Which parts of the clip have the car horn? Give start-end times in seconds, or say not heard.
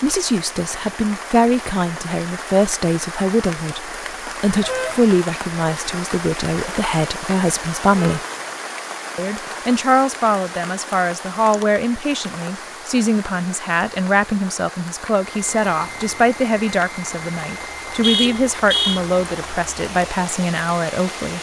4.6-5.2, 8.0-8.6, 18.0-19.0.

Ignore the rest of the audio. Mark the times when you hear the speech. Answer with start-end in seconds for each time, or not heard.
0.0-8.2, 9.2-21.3.